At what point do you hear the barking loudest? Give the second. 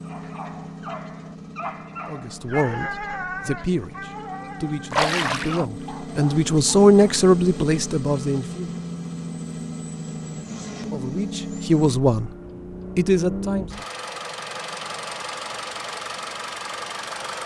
3 s.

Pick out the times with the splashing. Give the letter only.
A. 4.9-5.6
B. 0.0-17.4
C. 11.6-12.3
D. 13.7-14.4
A.